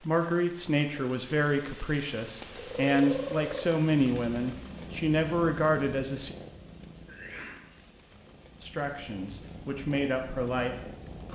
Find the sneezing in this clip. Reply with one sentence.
The sneezing can be heard from 7.0 to 7.7 s.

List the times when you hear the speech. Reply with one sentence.
The speech can be heard from 0.0 to 6.3 s and from 8.6 to 10.9 s.